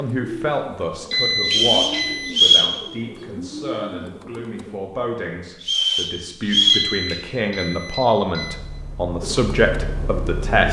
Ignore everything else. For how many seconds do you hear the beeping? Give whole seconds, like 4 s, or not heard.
3 s.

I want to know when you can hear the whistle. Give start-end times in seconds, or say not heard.
1.4-2.8, 5.6-6.9.